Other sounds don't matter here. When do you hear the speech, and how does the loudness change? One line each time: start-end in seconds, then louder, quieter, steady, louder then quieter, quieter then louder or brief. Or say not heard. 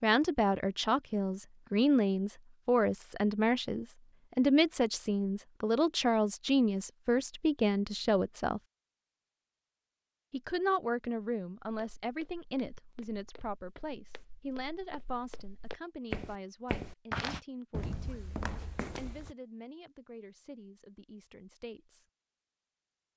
0.0-8.6 steady
10.3-22.1 quieter.